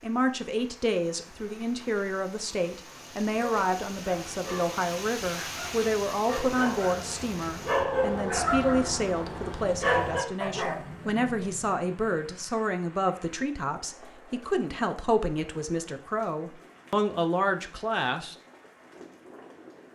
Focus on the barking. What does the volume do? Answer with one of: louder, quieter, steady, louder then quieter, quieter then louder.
louder then quieter.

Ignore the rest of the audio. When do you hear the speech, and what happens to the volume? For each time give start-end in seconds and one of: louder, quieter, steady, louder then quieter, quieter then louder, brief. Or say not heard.
0.0-18.4 steady.